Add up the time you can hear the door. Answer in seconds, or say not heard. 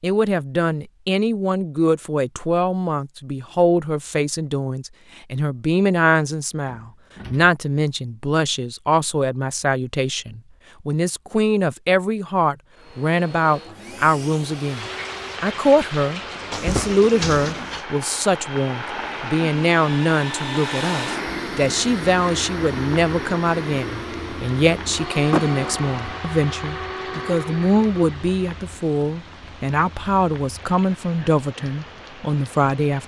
3 s.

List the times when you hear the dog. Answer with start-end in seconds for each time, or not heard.
not heard.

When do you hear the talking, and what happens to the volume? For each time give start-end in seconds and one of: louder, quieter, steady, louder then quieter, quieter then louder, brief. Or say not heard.
0.0-33.0 steady.